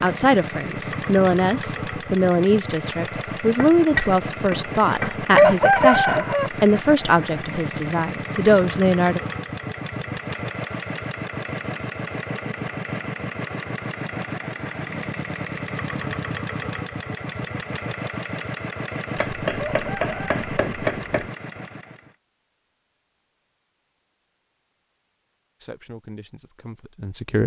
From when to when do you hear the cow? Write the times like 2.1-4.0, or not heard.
not heard.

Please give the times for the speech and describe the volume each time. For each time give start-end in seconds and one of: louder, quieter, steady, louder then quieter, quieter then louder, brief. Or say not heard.
0.0-9.2 steady
25.6-27.4 brief.